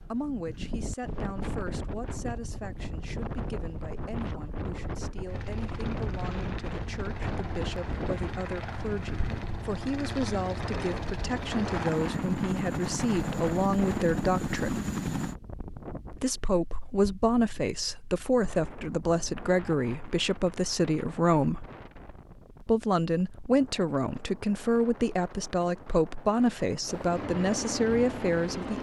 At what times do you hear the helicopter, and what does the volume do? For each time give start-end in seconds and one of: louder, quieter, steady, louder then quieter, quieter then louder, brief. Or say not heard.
5.2-15.3 louder
26.9-28.7 brief.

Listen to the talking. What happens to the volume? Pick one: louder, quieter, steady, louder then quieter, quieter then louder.
louder.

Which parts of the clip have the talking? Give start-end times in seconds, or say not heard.
0.0-14.8, 16.1-21.6, 22.6-28.7.